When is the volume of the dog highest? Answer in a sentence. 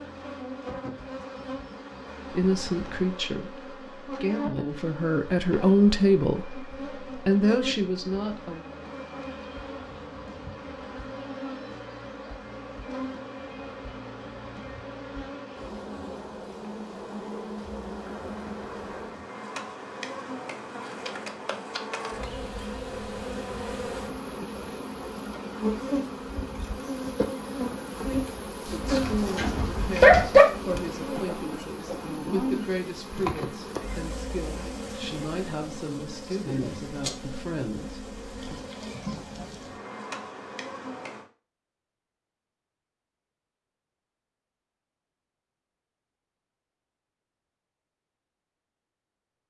The volume of the dog peaks at 30 seconds.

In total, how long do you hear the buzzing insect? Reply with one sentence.
You can hear the buzzing insect for 41 seconds altogether.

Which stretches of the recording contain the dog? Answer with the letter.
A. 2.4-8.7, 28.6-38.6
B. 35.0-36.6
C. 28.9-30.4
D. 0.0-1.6
C.